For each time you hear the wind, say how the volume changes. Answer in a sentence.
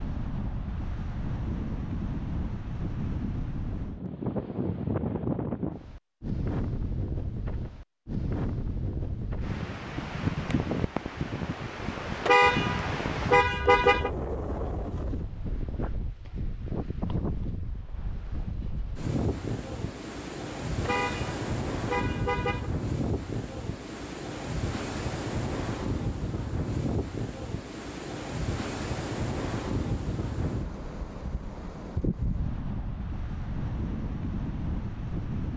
The wind can be heard from 0.0 to 35.5 s, at a steady volume.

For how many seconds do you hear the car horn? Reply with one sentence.
The car horn can be heard for 4 seconds in total.